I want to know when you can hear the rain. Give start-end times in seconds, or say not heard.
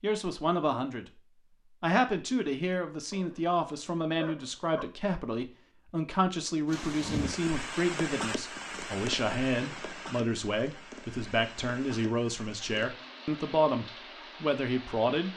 6.7-15.3.